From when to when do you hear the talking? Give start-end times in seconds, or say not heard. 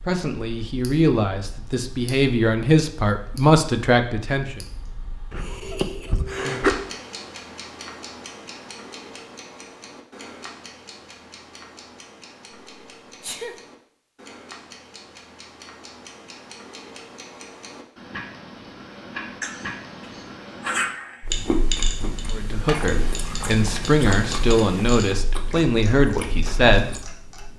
0.0-4.7, 22.3-27.0.